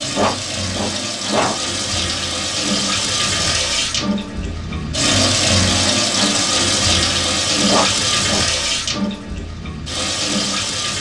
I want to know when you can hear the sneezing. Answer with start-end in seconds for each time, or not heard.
0.1-1.6, 7.7-8.4.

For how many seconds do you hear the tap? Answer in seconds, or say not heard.
11 s.